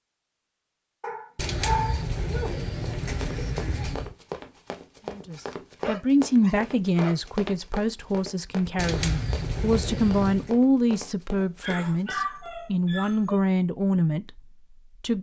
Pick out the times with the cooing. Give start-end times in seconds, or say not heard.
1.4-4.2, 8.8-10.6.